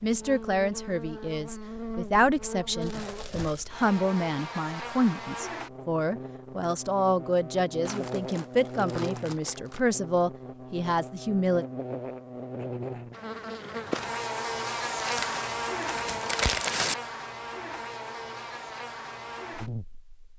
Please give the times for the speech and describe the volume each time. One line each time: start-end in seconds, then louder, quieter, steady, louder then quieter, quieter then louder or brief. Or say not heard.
0.0-11.7 steady.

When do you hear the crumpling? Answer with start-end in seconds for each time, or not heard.
2.8-3.9, 7.8-9.8, 14.9-16.9.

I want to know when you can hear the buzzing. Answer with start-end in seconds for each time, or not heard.
0.0-20.1.